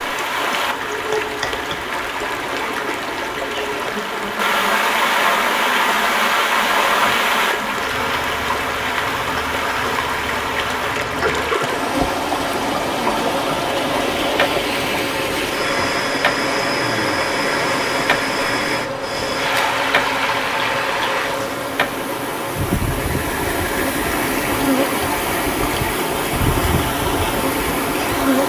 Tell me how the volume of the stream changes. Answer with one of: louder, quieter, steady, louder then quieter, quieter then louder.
steady.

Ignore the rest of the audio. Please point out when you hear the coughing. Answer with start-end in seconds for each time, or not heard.
11.2-11.9.